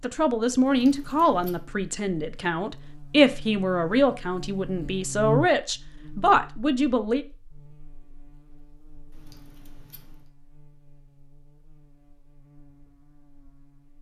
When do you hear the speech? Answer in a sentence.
You can hear the speech from 0.0 to 7.2 s.